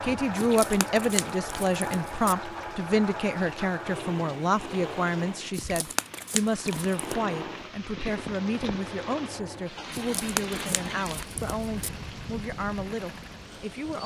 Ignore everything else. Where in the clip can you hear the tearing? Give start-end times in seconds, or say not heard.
0.3-2.4, 5.5-7.2, 9.9-11.9.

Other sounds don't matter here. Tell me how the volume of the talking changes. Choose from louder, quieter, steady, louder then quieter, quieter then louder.
quieter.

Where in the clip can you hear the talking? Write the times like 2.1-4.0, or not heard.
0.0-14.0.